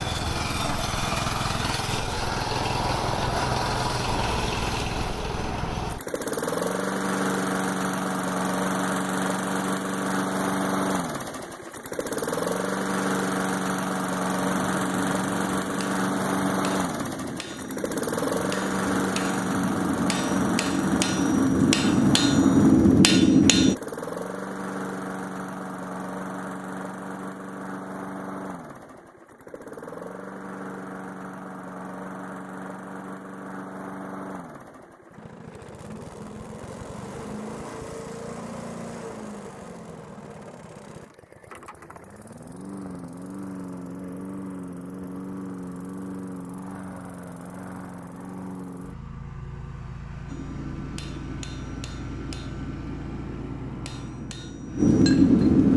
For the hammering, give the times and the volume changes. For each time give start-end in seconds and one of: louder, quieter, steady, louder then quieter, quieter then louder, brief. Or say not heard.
14.4-23.8 louder
50.2-55.7 louder.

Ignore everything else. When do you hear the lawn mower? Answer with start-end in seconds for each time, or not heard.
0.0-55.7.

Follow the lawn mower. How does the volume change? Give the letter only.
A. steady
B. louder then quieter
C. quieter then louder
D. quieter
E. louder
D.